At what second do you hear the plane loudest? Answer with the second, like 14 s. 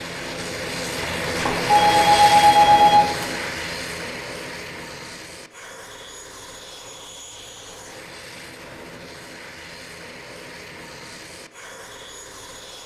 2 s.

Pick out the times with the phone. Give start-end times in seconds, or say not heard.
1.4-3.2.